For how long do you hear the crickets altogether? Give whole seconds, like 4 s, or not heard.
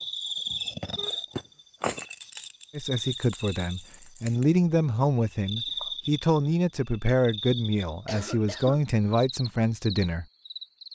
11 s.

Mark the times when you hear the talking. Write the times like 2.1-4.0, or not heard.
2.7-10.2.